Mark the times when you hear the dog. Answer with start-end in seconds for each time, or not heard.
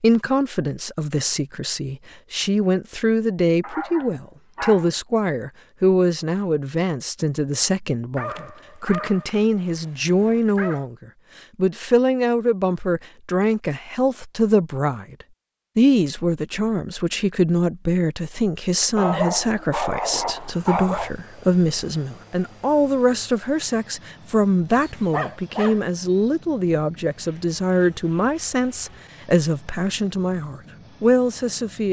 3.6-4.9, 8.2-10.8, 18.9-21.1, 24.6-25.8.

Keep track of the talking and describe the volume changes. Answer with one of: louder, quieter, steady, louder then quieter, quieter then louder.
steady.